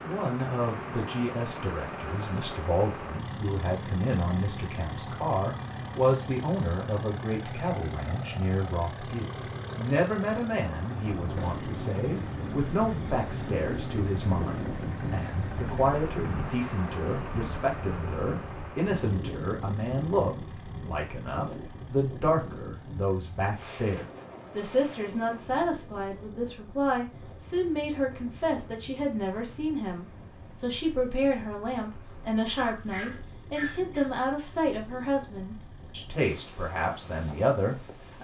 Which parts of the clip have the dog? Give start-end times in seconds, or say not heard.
32.5-34.1.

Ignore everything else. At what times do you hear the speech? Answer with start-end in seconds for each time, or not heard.
0.0-38.1.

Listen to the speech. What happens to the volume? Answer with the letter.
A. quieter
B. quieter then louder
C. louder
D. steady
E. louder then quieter
D.